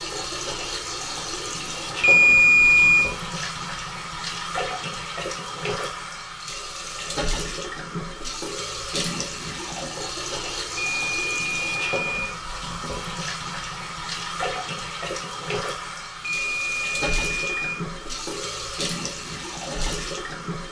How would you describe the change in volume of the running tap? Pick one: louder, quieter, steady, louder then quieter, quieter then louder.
steady.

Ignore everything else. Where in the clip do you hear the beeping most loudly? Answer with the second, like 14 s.
2 s.